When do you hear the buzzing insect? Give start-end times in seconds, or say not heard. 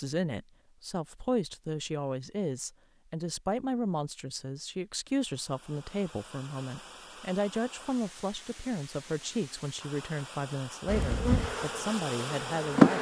10.8-12.9.